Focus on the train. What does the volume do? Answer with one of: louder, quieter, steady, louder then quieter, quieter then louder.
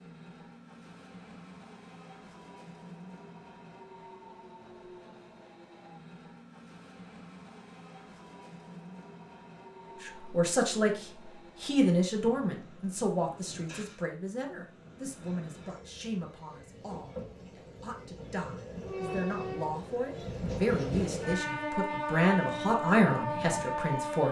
louder.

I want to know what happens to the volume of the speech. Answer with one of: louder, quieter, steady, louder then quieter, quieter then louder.
quieter then louder.